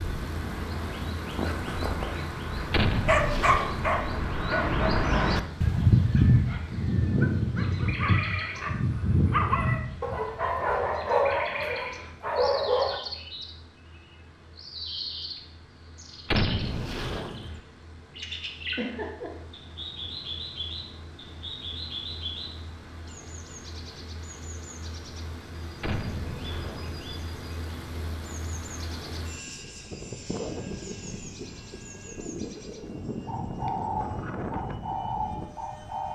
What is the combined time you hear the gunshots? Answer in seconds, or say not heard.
4 s.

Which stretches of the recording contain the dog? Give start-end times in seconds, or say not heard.
1.4-5.4, 6.2-13.0.